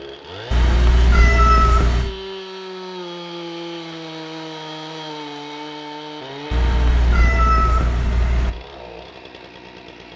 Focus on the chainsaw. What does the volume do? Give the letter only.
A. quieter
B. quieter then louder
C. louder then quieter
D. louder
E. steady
A.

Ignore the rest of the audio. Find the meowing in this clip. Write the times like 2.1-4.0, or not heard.
0.5-2.1, 6.5-8.5.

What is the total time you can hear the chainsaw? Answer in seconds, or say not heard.
10 s.